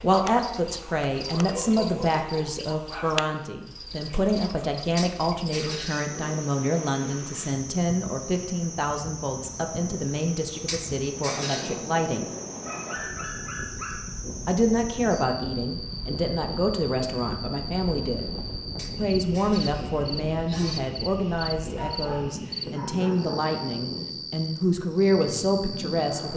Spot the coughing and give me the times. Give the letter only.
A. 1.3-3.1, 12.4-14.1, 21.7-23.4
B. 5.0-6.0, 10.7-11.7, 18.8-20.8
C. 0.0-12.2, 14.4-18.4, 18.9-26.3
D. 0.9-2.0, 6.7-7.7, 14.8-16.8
B.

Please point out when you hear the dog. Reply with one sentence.
The dog can be heard from 1.3 to 3.1 s, from 12.4 to 14.1 s and from 21.7 to 23.4 s.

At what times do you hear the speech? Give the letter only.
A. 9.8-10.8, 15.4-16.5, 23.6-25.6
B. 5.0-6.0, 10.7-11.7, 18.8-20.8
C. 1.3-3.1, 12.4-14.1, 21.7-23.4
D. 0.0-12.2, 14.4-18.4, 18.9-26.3
D.